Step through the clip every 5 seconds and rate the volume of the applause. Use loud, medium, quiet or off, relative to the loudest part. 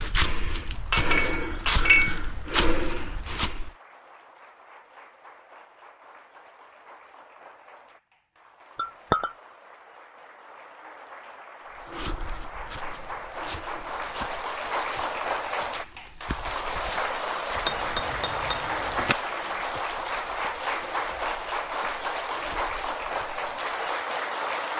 quiet, quiet, medium, loud, loud.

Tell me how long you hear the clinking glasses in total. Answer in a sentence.
You can hear the clinking glasses for 3 seconds altogether.